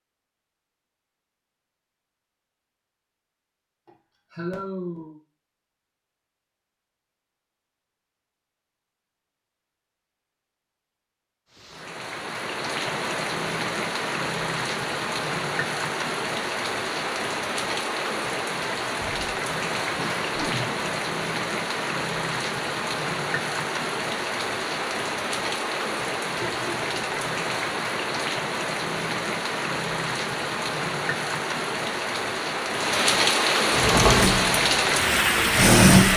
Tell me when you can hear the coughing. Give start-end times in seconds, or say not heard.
3.9-5.2, 19.0-20.9, 26.4-27.3.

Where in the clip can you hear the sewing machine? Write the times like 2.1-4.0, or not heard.
33.7-36.1.